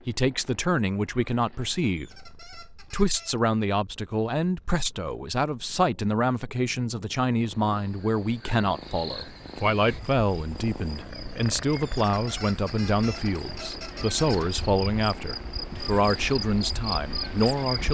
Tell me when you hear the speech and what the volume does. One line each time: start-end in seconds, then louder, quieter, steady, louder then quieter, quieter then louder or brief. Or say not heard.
0.1-17.8 steady.